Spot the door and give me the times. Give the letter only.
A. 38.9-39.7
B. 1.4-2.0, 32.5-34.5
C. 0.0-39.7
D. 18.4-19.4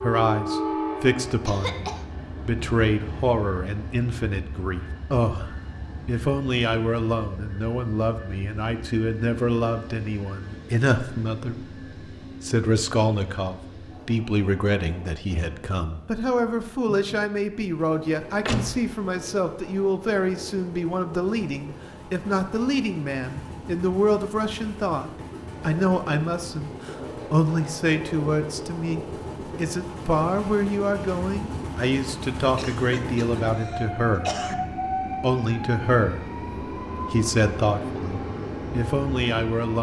D.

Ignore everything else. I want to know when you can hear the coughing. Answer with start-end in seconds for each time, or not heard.
1.4-2.0, 32.5-34.5.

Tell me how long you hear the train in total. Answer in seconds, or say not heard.
40 s.